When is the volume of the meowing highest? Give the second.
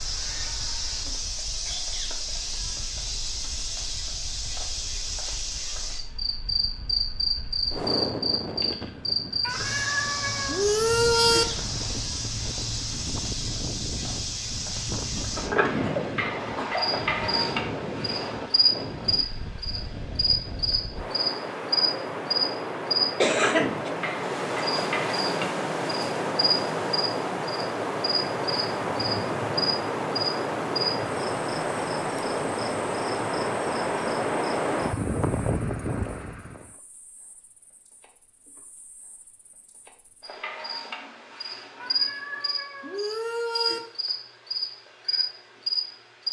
11 s.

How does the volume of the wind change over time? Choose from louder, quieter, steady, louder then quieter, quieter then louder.
louder.